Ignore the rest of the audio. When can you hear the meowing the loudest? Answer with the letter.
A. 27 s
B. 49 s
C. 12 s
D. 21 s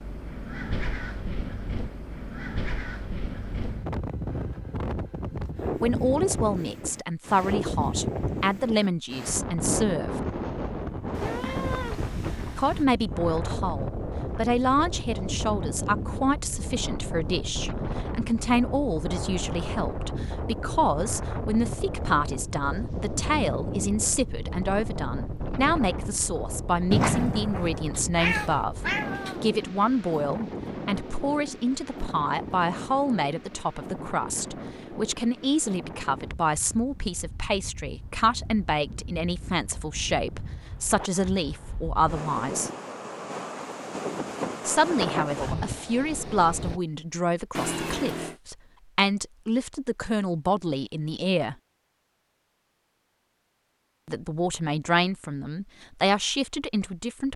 A.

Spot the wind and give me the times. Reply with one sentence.
The wind can be heard from 0.0 to 46.8 s.